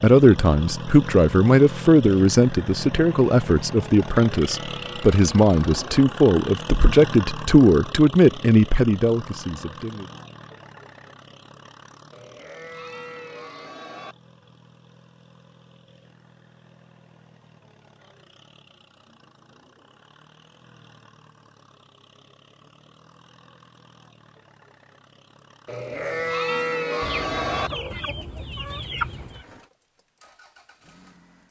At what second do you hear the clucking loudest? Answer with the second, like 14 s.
29 s.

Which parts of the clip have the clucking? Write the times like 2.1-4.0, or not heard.
27.0-29.4.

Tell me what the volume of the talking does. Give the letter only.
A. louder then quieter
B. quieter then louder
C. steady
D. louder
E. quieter
C.